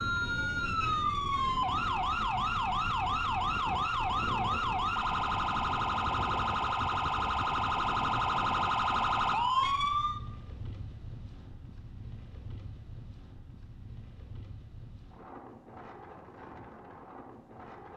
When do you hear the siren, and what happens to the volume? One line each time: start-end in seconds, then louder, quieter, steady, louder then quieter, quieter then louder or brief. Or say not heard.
0.0-10.2 steady.